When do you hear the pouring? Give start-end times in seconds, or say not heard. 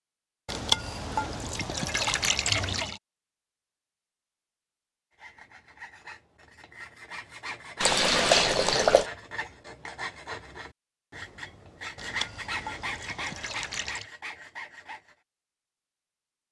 0.5-3.0, 7.8-9.1, 11.9-14.1.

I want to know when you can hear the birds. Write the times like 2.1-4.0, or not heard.
not heard.